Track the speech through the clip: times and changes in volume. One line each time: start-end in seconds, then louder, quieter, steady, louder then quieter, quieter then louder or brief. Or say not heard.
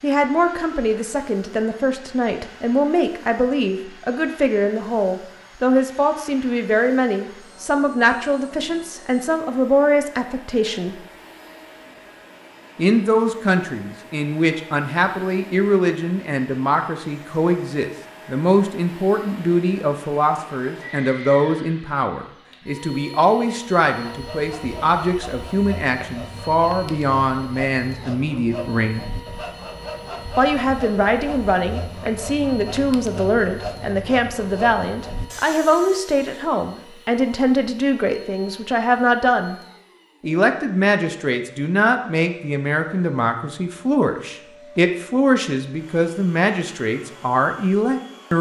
0.0-11.0 steady
12.8-29.1 steady
30.4-39.5 steady
40.2-48.3 steady.